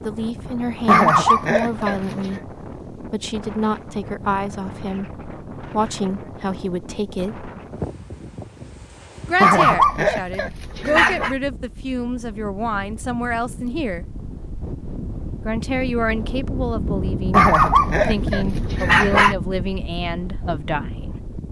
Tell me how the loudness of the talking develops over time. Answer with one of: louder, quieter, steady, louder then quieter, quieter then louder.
steady.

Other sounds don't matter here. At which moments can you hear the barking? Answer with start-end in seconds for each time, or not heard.
0.8-2.4, 9.4-11.3, 17.3-19.4.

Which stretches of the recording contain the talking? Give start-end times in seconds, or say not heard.
0.0-7.5, 9.2-14.1, 15.4-21.1.